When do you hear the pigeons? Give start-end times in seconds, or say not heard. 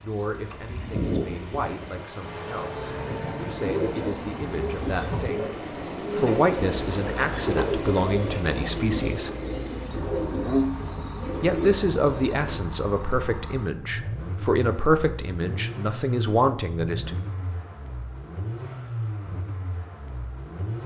3.0-12.6.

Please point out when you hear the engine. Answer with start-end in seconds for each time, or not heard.
0.0-20.8.